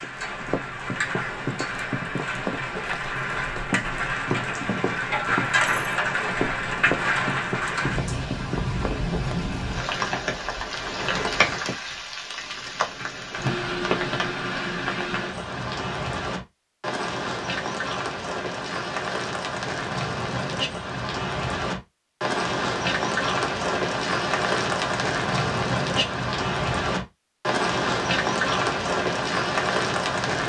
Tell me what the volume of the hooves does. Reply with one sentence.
The loudness of the hooves stays about the same.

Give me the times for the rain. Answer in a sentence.
You can hear the rain from 0.0 to 30.4 s.